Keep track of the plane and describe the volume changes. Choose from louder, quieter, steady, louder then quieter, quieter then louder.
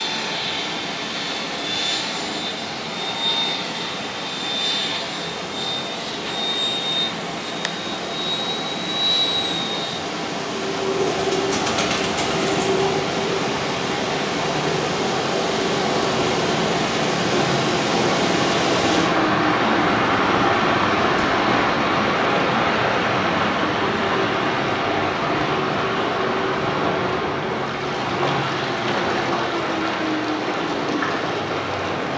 steady.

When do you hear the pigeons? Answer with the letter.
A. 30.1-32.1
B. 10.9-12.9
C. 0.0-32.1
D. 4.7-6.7
B.